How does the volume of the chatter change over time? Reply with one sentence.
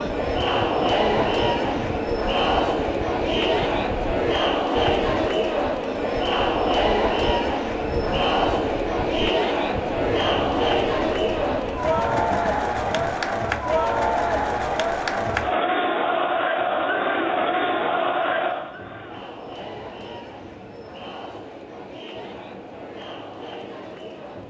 The loudness of the chatter goes down.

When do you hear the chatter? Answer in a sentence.
The chatter can be heard from 0.0 to 24.4 s.